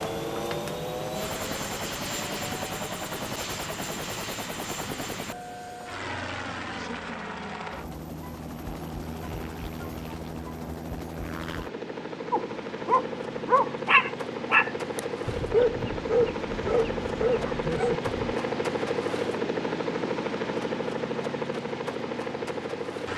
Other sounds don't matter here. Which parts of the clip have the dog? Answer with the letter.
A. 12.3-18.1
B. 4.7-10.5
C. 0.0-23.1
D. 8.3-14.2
A.